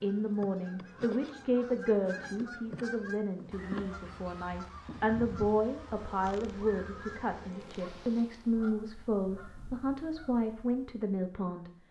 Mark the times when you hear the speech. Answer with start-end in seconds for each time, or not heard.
0.0-11.7.